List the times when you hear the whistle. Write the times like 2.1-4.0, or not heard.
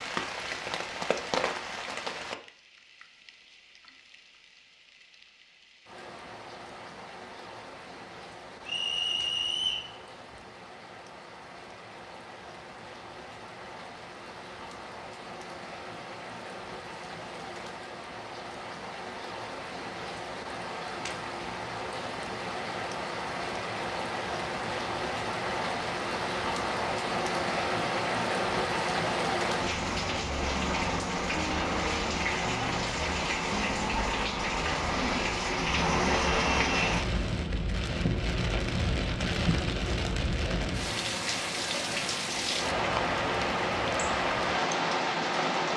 8.7-9.9.